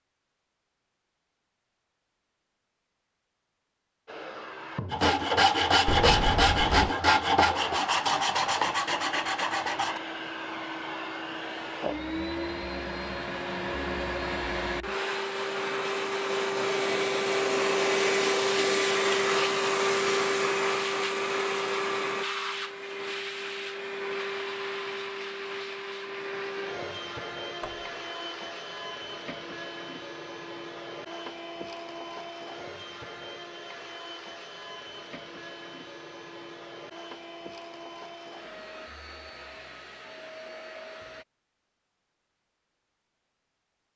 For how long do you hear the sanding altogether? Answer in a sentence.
The sanding can be heard for 5 seconds in total.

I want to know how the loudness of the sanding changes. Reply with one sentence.
The loudness of the sanding goes down.